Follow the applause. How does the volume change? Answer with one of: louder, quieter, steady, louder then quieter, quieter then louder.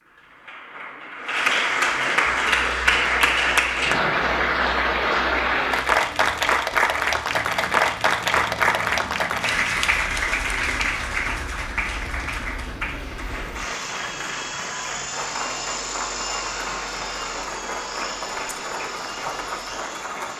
quieter.